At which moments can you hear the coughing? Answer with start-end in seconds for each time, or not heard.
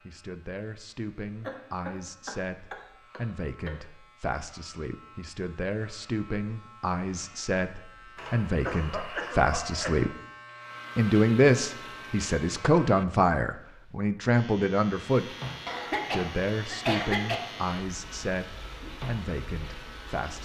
1.4-3.8, 8.2-10.1, 15.7-17.4.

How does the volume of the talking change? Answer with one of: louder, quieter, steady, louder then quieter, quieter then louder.
louder then quieter.